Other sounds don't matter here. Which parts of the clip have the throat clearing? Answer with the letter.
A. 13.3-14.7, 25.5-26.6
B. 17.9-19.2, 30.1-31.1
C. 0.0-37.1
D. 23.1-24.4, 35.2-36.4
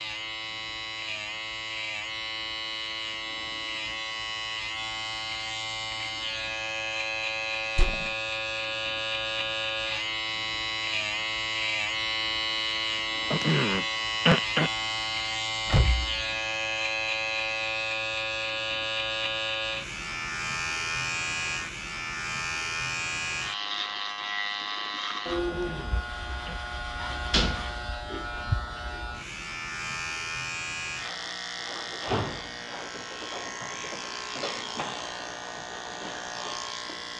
A.